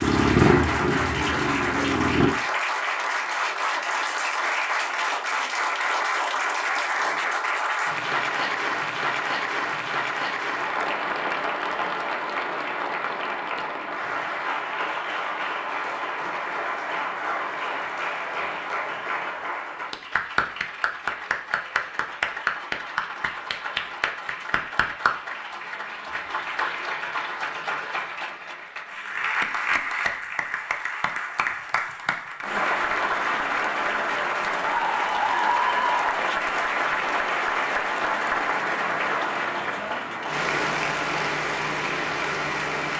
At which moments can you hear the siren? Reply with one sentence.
The siren can't be heard in this clip.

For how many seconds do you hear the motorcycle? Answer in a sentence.
The motorcycle can be heard for 2 seconds in total.